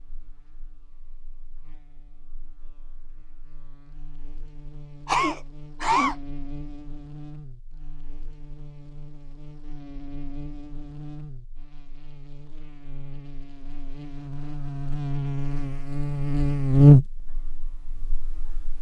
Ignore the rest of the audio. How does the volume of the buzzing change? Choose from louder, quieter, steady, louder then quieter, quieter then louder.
louder.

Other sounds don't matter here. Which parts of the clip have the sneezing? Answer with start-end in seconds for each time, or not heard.
5.0-6.2.